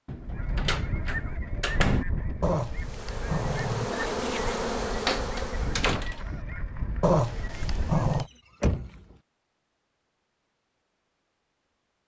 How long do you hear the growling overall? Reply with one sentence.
You can hear the growling for 3 seconds altogether.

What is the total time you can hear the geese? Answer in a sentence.
You can hear the geese for 8 seconds altogether.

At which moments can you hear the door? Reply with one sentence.
You can hear the door from 0.1 to 2.0 s, from 5.0 to 6.4 s and from 8.2 to 9.2 s.